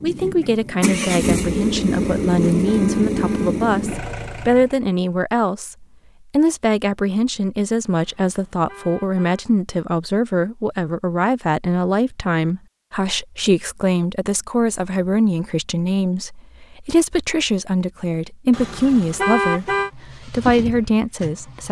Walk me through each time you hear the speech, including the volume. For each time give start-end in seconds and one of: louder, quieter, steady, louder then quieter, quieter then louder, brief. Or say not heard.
0.0-21.6 steady.